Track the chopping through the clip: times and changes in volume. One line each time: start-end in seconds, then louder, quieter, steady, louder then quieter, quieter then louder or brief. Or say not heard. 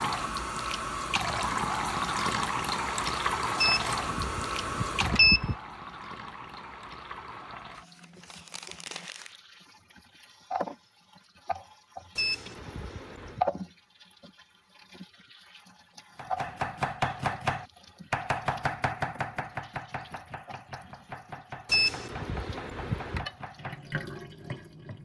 16.1-24.9 quieter.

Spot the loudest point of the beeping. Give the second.
5 s.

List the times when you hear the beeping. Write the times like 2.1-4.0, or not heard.
3.5-5.5, 12.2-13.4, 21.6-23.2.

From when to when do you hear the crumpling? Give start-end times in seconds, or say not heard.
7.8-9.4.